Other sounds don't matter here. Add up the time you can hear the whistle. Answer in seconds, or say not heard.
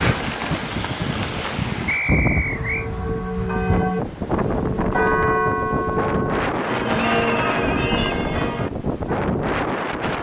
2 s.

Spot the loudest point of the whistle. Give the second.
2 s.